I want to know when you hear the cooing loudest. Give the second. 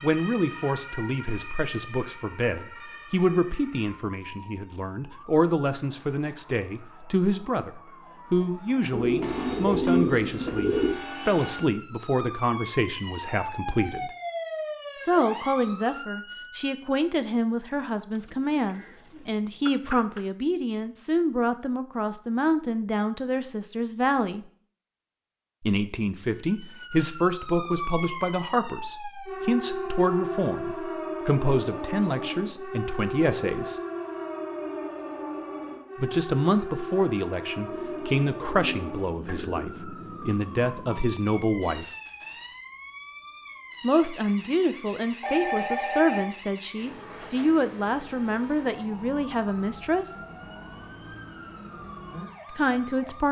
10 s.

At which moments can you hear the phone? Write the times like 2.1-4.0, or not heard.
9.2-11.7, 45.2-46.2.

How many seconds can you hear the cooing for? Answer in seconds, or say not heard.
6 s.